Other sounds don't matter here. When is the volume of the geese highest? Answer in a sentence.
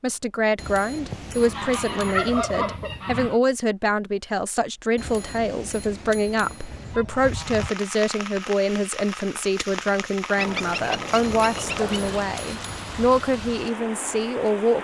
The loudest moment of the geese is at 2 seconds.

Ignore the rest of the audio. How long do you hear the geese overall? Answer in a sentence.
You can hear the geese for 5 seconds altogether.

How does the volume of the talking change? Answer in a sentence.
The volume of the talking stays about the same.